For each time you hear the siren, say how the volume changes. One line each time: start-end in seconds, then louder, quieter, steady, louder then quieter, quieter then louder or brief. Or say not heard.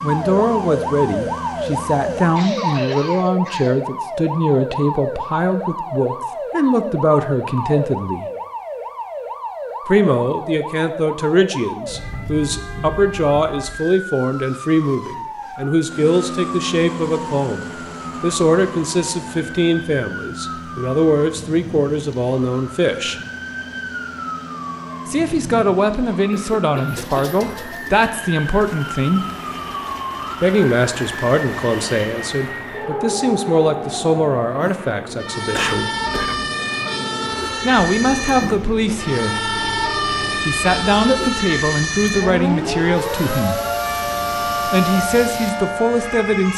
0.0-46.5 quieter then louder.